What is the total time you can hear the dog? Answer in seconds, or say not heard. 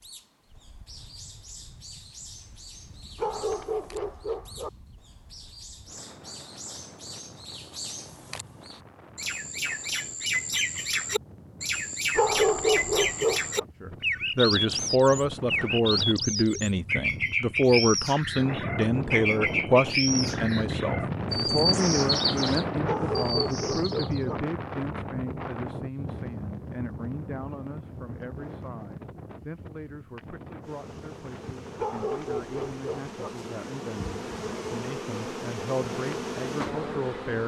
6 s.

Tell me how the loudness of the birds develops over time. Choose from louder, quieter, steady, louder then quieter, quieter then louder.
louder.